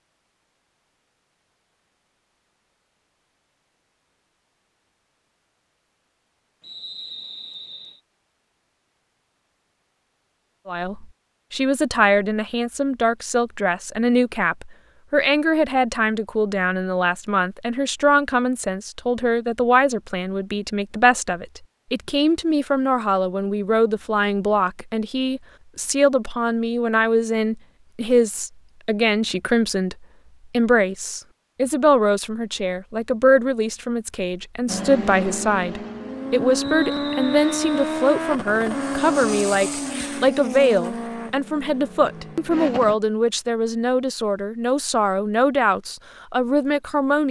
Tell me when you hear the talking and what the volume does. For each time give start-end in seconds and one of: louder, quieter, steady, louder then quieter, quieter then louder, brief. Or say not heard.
10.7-47.2 steady.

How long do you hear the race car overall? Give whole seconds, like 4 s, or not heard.
8 s.